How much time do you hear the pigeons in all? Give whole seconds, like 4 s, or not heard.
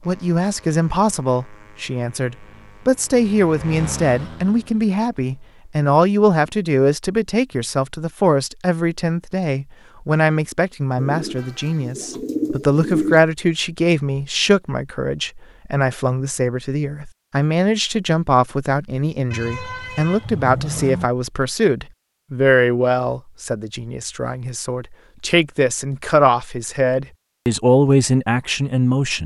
2 s.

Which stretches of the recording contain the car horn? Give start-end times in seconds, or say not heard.
11.3-11.9, 19.3-21.1.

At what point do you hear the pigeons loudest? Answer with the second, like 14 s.
13 s.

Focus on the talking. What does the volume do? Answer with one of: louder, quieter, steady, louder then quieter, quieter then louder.
steady.